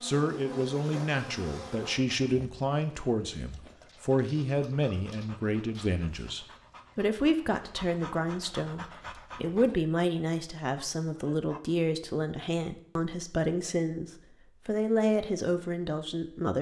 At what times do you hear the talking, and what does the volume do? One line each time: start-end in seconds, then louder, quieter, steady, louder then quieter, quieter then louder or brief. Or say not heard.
0.0-16.5 steady.